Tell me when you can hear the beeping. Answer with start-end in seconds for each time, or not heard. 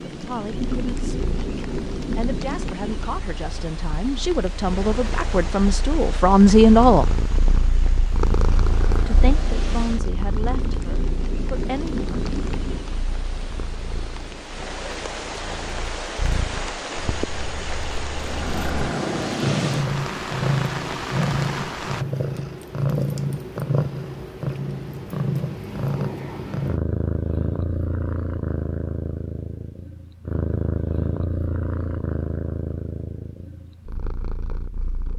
not heard.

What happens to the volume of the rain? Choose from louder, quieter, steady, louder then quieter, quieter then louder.
quieter then louder.